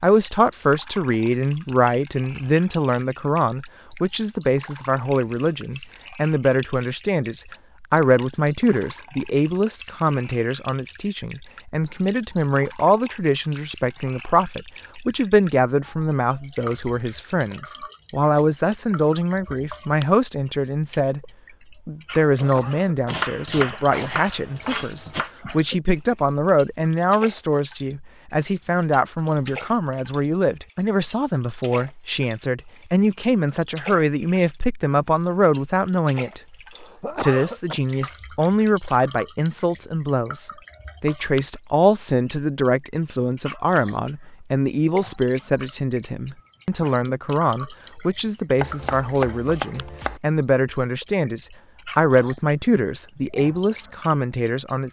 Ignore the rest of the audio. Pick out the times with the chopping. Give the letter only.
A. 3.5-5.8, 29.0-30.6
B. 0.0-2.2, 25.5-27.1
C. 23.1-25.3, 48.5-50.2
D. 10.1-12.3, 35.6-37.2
C.